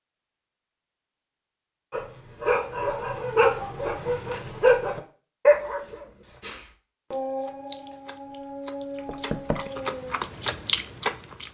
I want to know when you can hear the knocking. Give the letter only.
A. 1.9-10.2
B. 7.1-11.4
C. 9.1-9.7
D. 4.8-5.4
C.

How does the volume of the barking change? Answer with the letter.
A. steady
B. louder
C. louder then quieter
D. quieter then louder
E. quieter
E.